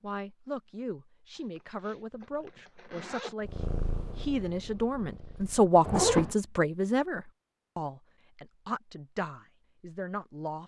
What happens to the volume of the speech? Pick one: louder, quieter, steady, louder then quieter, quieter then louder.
louder then quieter.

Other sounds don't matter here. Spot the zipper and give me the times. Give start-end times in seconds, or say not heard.
1.4-3.4, 5.8-6.3.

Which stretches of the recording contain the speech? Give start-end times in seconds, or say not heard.
0.0-10.6.